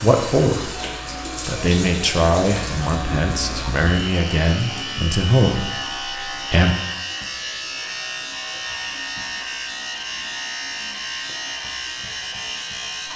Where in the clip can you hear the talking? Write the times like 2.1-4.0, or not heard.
0.0-0.7, 1.4-6.8.